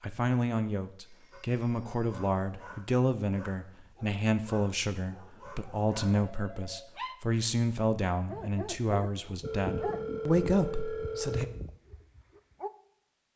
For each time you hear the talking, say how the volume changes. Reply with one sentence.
You can hear the talking from 0.0 to 11.4 s, at a steady volume.